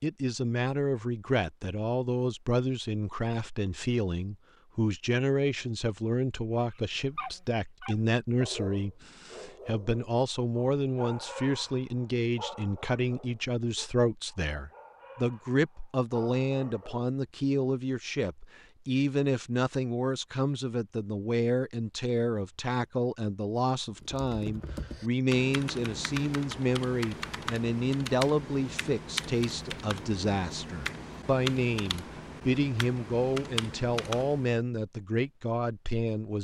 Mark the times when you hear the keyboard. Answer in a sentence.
You can hear the keyboard from 24.0 to 34.6 s.